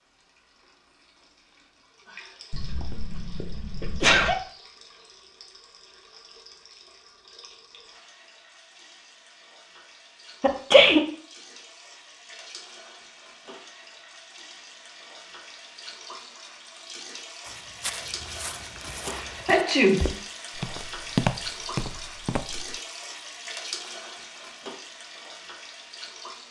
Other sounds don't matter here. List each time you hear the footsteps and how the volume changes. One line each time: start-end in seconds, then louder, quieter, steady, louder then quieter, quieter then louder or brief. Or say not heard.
17.4-22.8 louder then quieter.